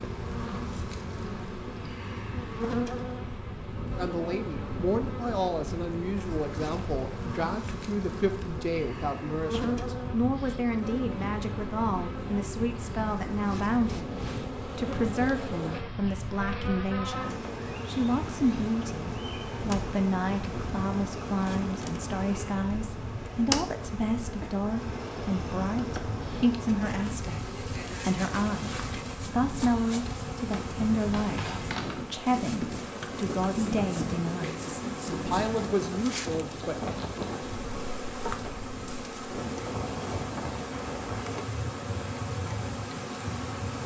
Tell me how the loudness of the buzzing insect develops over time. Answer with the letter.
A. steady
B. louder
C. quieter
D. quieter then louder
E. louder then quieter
A.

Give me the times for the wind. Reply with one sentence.
You can hear the wind from 0.0 to 43.8 s.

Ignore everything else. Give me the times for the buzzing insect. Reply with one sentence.
The buzzing insect can be heard from 0.0 to 43.8 s.